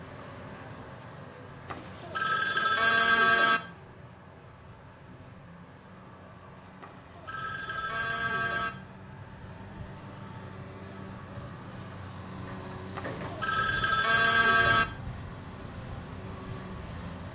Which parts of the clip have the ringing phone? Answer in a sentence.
The ringing phone can be heard from 1.6 to 3.6 s, from 6.8 to 8.7 s and from 12.9 to 14.8 s.